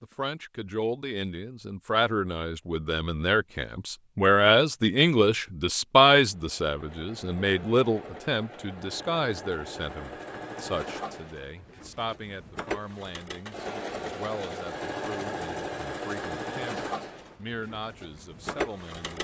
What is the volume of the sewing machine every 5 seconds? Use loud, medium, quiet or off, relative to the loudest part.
off, medium, loud, loud.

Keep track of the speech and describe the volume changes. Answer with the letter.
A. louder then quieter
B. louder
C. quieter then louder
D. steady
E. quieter
A.